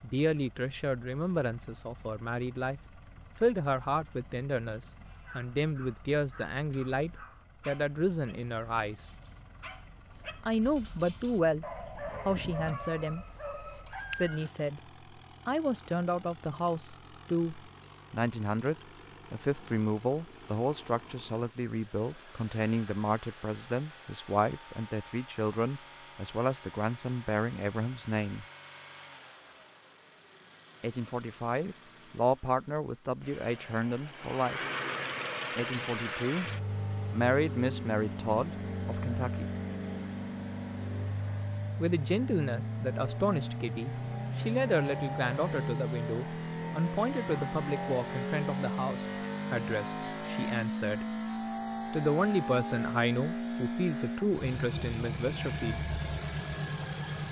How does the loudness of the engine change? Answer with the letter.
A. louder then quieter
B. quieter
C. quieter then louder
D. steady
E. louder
E.